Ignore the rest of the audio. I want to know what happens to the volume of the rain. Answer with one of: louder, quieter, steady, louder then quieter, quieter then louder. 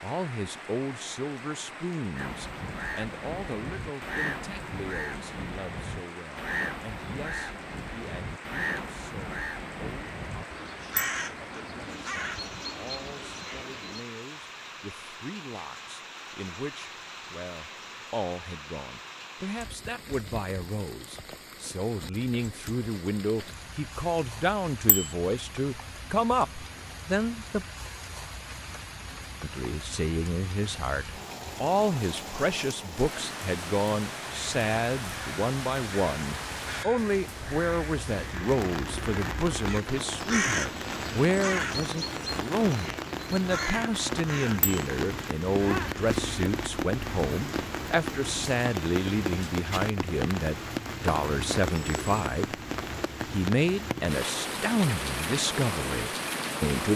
louder.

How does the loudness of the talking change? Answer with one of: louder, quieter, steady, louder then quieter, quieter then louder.
louder.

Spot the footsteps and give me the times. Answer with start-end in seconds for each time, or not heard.
not heard.